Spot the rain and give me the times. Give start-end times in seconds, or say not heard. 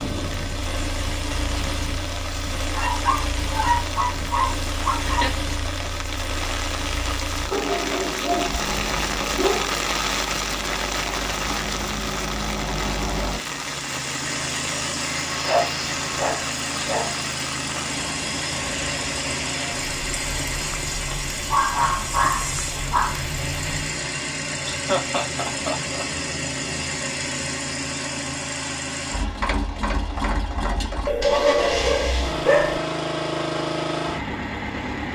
0.0-23.9.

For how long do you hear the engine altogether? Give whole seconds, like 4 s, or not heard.
35 s.